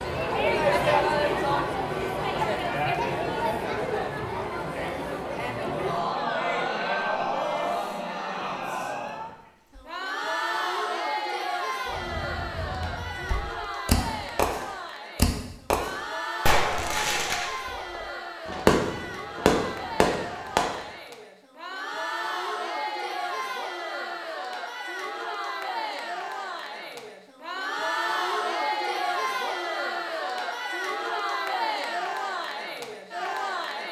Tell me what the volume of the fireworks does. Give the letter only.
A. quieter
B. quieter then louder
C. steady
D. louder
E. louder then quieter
D.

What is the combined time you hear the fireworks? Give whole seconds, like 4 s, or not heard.
9 s.